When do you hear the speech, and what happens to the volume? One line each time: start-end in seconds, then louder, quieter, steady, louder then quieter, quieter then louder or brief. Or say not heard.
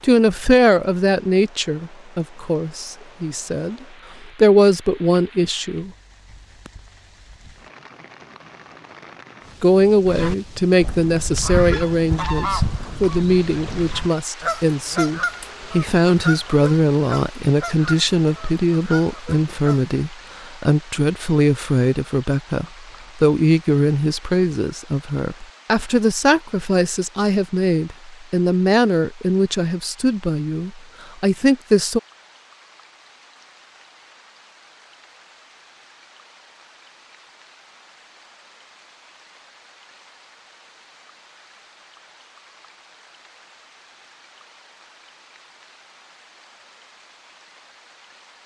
0.0-5.9 quieter then louder
9.6-32.0 steady.